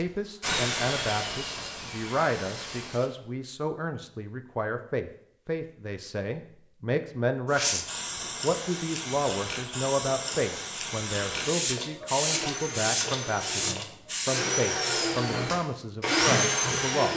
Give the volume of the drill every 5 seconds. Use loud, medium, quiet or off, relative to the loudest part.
medium, off, medium, loud.